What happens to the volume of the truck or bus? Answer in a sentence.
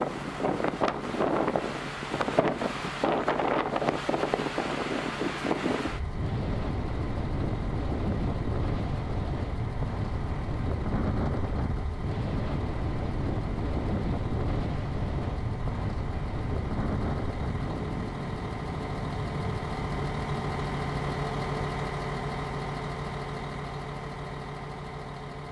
The volume of the truck or bus goes up.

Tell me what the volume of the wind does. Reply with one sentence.
The loudness of the wind goes down.